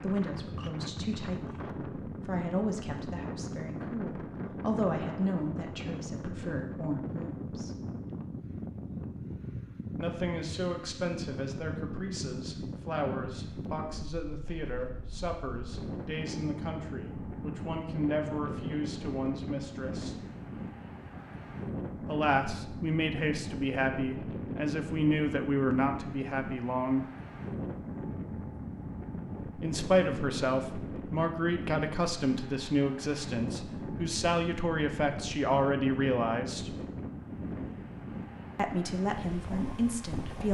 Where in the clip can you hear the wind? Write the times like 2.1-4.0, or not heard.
0.0-40.4.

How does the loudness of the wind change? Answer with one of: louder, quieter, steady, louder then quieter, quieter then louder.
steady.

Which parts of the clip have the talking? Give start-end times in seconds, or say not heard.
0.0-7.8, 9.9-20.1, 22.1-27.1, 29.6-36.8, 38.5-40.4.